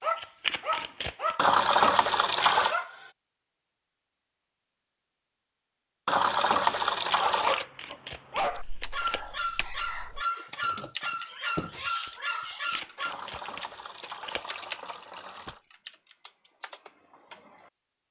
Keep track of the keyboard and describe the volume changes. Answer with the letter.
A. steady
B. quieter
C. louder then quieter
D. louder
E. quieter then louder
C.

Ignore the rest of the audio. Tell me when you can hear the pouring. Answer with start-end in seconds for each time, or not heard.
1.4-2.7, 6.0-7.7, 13.1-15.6.